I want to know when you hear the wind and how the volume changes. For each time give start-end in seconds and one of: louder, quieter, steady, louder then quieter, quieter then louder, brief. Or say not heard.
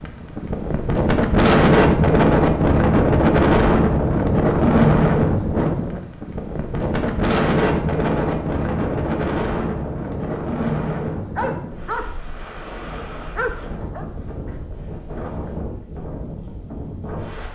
0.0-17.5 quieter.